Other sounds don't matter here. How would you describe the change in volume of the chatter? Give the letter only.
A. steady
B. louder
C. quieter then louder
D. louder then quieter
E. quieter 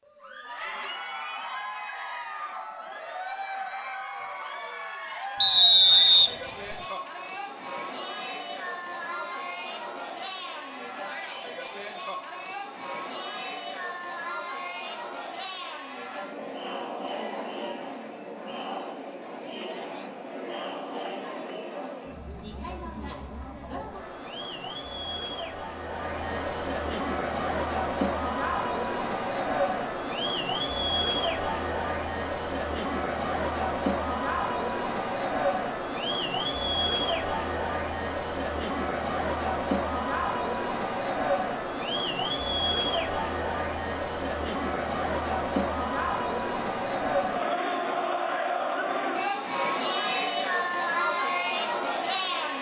B.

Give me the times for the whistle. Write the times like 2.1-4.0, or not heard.
5.4-6.8.